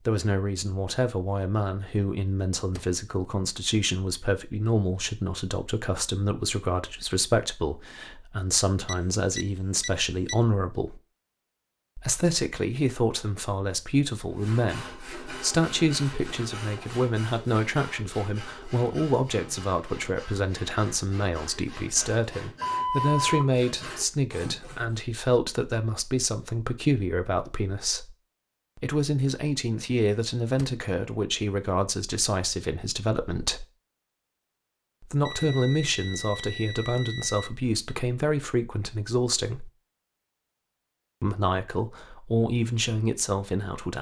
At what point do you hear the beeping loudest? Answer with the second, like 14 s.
23 s.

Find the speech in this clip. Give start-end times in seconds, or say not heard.
0.1-11.0, 11.9-28.1, 28.8-33.6, 35.0-39.7, 41.2-43.9.